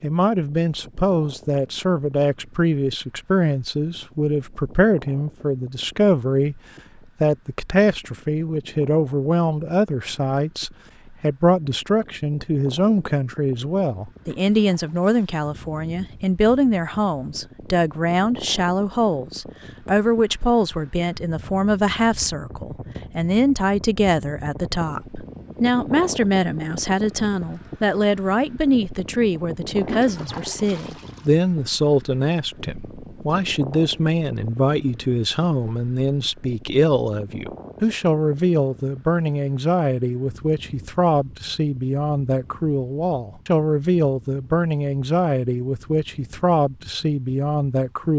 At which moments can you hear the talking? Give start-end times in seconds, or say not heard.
0.0-6.6, 7.2-48.1.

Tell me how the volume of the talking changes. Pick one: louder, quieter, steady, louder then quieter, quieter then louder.
steady.